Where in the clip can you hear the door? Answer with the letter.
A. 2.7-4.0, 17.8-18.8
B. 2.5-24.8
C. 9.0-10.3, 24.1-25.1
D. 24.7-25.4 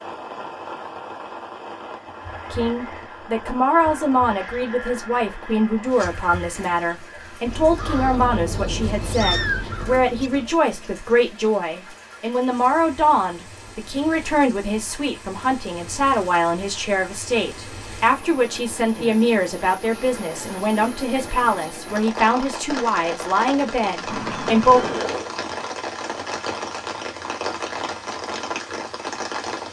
D.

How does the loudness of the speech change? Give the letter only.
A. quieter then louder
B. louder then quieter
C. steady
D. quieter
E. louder
C.